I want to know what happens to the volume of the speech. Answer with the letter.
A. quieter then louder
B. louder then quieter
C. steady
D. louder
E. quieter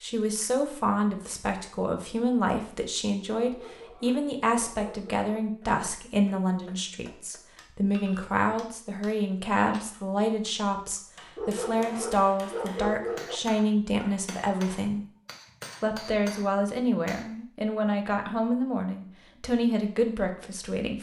C.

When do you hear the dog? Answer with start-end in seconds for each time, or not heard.
3.4-5.2, 11.3-13.4.